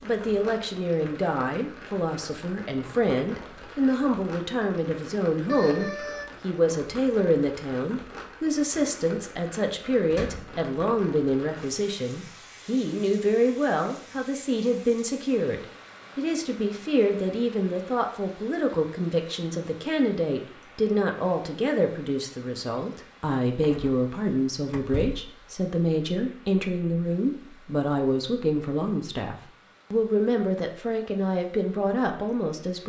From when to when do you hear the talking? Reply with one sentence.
You can hear the talking from 0.0 to 32.8 s.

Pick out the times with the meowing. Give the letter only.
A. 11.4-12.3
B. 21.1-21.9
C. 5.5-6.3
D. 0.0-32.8
C.